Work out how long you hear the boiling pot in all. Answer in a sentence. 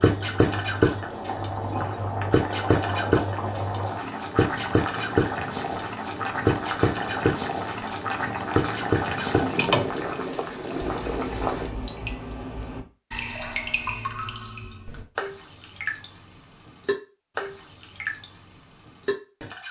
The boiling pot can be heard for 12 seconds in total.